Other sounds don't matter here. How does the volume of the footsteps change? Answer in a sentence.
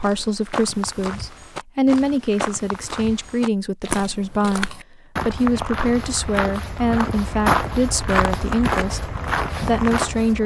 The volume of the footsteps goes up.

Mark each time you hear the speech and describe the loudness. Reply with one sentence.
The speech can be heard from 0.0 to 10.4 s, at a steady volume.